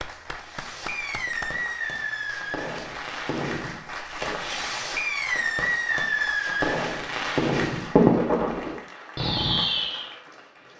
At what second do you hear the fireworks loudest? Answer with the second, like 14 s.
8 s.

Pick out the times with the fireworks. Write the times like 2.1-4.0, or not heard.
0.4-10.1.